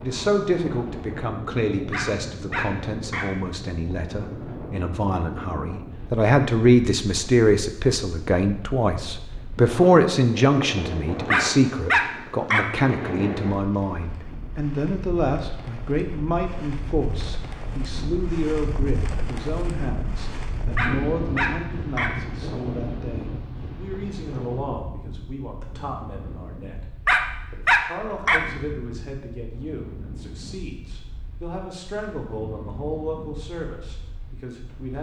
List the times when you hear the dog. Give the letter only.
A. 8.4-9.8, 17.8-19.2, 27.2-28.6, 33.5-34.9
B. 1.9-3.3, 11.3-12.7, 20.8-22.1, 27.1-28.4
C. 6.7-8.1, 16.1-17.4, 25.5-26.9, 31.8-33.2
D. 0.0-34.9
B.